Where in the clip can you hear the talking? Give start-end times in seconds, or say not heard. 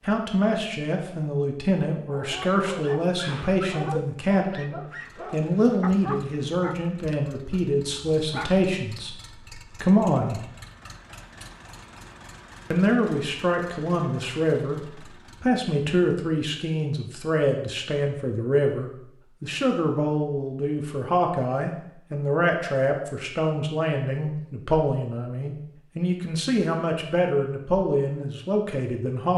0.0-10.4, 12.7-29.3.